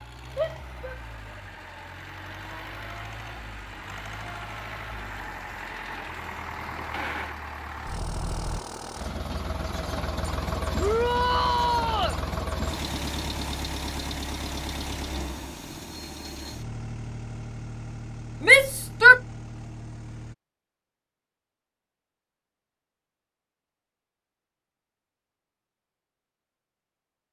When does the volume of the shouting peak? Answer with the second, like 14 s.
19 s.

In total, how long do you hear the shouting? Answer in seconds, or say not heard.
3 s.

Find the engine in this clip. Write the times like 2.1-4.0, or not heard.
0.0-20.4.